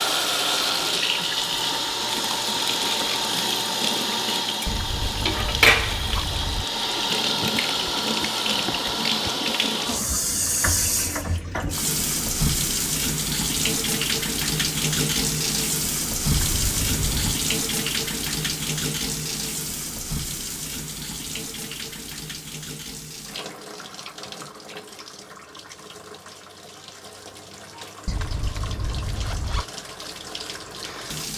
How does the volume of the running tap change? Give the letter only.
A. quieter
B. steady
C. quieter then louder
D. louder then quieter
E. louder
A.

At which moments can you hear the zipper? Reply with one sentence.
You can hear the zipper from 4.7 to 6.7 s, from 16.2 to 17.4 s and from 28.1 to 29.6 s.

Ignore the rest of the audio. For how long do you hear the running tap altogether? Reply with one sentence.
You can hear the running tap for 31 seconds altogether.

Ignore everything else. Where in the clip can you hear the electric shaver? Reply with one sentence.
You can't hear the electric shaver here.